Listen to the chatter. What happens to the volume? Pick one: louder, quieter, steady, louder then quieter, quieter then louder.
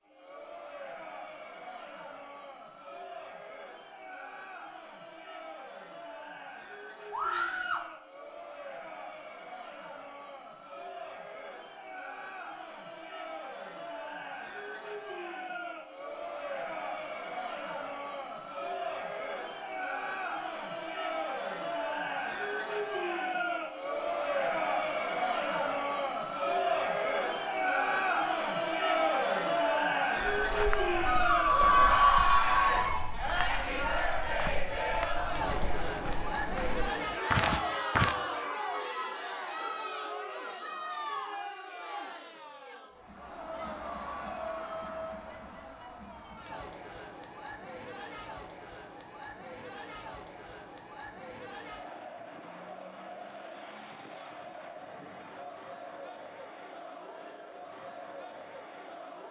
louder then quieter.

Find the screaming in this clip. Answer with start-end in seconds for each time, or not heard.
7.1-7.8, 31.1-33.0.